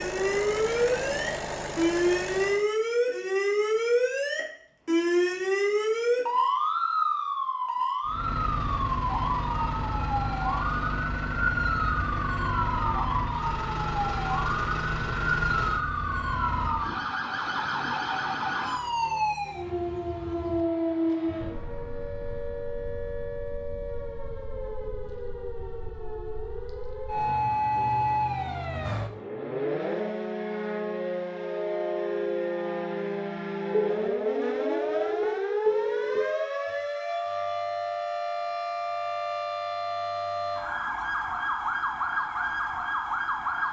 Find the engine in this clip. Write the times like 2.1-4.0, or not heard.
0.0-2.7, 8.1-16.9.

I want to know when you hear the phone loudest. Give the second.
36 s.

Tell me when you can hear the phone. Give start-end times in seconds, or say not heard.
34.0-36.2.